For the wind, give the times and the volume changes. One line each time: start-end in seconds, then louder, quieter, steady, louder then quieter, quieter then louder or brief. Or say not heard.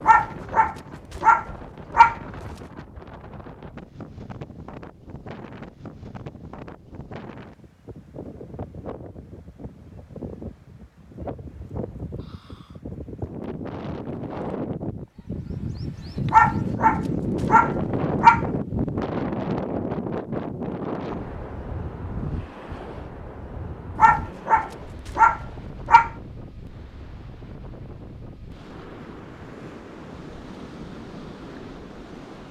0.0-32.4 louder then quieter.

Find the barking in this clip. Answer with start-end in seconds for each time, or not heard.
0.1-2.1, 16.3-18.4, 23.9-26.1.